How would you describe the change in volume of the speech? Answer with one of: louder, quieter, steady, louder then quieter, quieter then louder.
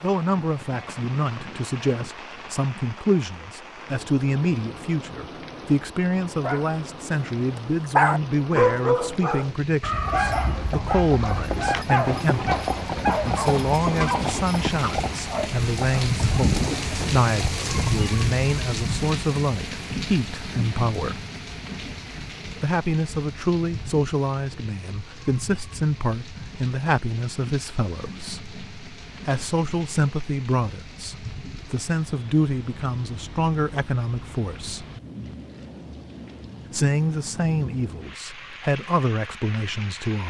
steady.